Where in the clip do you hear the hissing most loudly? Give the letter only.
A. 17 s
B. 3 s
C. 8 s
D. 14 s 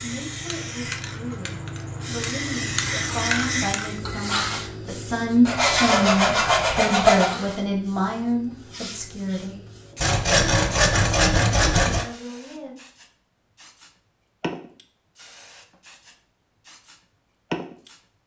B.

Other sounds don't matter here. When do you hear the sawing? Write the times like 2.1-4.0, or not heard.
5.5-7.3, 10.0-12.1.